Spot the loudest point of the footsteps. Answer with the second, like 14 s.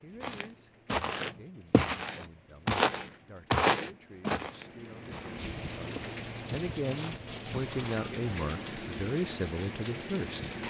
4 s.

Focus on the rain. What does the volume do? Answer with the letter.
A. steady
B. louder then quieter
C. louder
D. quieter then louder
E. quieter
C.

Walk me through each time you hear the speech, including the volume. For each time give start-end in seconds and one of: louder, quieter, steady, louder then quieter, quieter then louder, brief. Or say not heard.
0.0-10.5 louder.